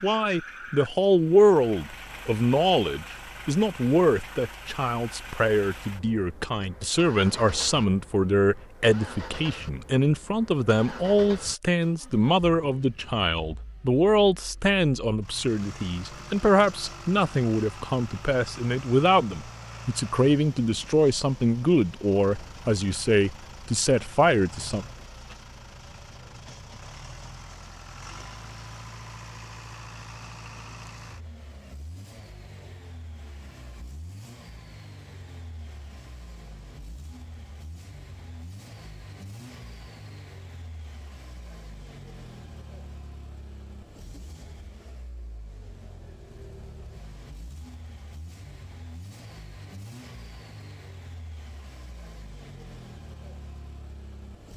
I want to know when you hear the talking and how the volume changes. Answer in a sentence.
You can hear the talking from 0.0 to 24.9 s, at a steady volume.